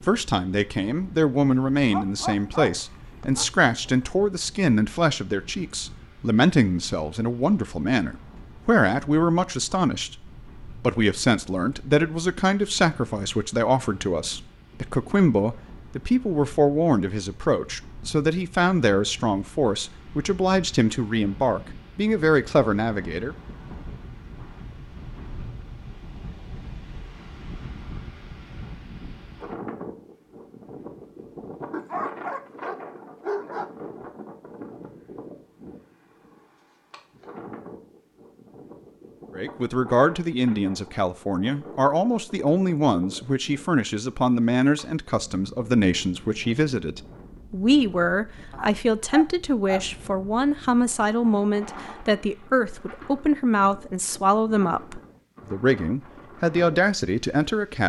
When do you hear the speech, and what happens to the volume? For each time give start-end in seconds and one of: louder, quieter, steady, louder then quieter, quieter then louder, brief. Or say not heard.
0.0-23.4 steady
39.4-57.8 steady.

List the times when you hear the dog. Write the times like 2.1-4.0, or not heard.
1.9-4.0, 31.7-33.7, 48.5-49.8.